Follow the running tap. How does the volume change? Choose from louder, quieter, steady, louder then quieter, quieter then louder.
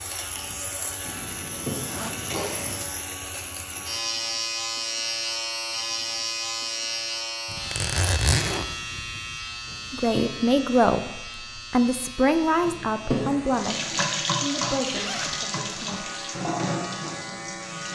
quieter.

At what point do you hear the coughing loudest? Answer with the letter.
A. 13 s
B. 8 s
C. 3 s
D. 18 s
A.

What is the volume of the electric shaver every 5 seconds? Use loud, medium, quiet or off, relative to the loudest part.
loud, loud, medium, medium.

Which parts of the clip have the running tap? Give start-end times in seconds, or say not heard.
13.4-17.9.